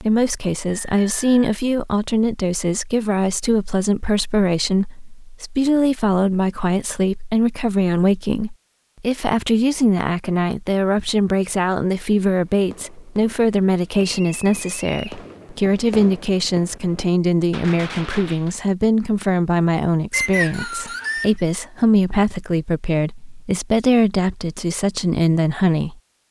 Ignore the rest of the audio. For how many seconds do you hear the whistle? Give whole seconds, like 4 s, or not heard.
3 s.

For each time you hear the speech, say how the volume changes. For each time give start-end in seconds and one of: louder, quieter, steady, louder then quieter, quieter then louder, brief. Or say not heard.
0.0-25.9 steady.